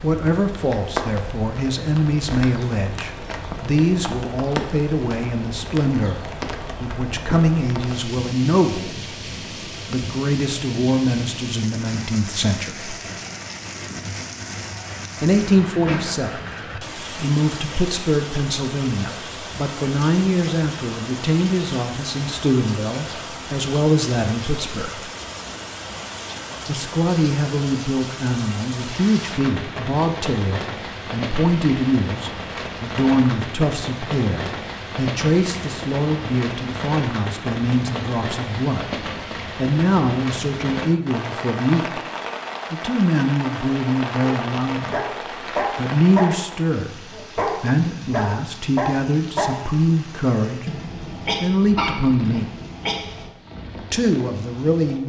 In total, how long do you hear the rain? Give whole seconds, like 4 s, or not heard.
55 s.